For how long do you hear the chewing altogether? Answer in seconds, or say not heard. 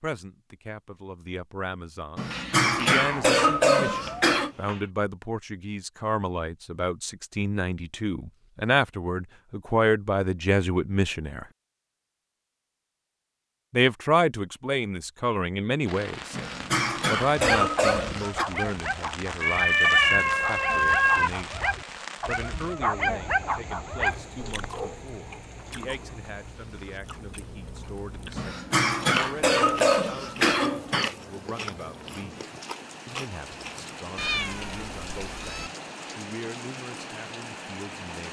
10 s.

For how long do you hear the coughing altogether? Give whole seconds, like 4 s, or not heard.
7 s.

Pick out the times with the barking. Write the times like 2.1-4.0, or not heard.
17.3-25.1.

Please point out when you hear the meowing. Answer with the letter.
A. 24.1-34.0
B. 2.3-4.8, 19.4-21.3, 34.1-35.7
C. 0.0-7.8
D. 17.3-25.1
B.